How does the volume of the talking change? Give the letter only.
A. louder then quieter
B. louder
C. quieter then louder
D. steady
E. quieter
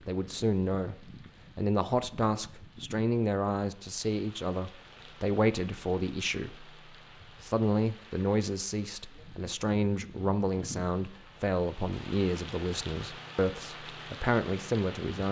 D.